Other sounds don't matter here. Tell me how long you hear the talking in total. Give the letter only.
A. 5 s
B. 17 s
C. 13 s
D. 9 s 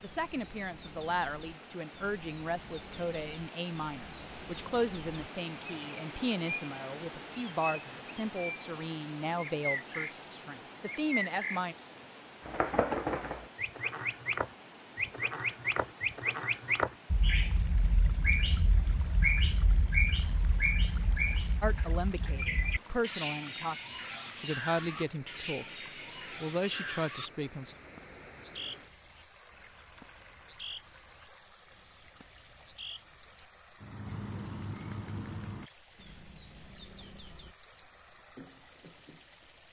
B.